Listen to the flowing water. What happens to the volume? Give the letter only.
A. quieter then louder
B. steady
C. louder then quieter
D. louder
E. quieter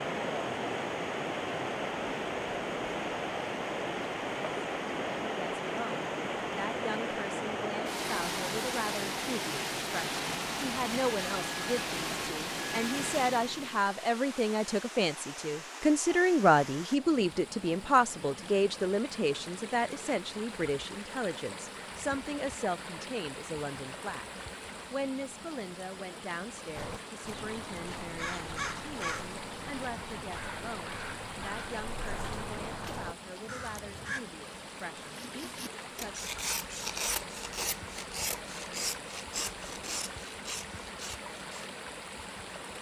E.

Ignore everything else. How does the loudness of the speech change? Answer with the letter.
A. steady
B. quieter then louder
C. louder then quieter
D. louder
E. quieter
C.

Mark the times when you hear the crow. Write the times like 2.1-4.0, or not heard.
26.8-34.2.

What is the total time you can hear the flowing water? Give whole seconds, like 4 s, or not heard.
43 s.